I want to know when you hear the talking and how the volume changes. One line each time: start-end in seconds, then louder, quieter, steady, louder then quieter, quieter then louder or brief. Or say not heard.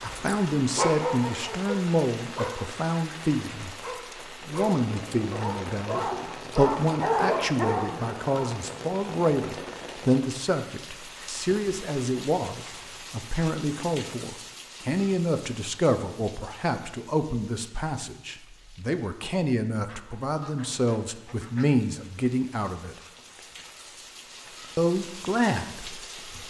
0.0-22.9 steady
24.8-26.1 brief.